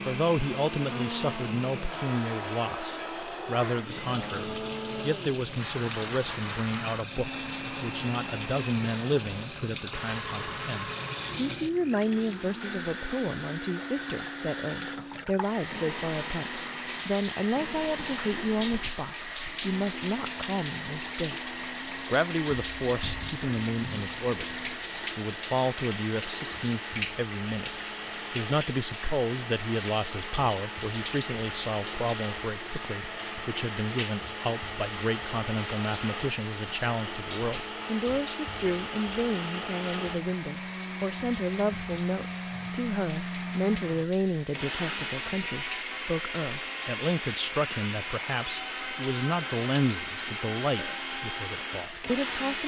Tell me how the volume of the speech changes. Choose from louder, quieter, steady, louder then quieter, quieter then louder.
steady.